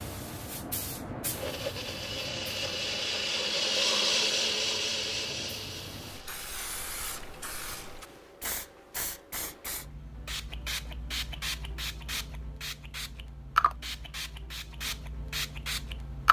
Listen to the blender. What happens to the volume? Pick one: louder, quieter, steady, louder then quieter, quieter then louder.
louder then quieter.